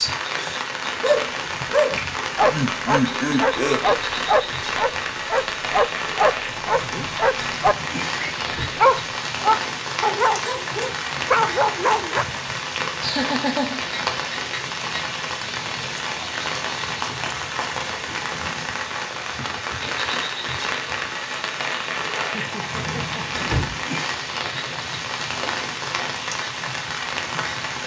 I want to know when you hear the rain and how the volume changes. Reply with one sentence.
You can hear the rain from 0.0 to 27.8 s, at a steady volume.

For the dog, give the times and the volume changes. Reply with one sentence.
You can hear the dog from 1.0 to 12.2 s, at a steady volume.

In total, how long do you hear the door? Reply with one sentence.
You can hear the door for 2 seconds altogether.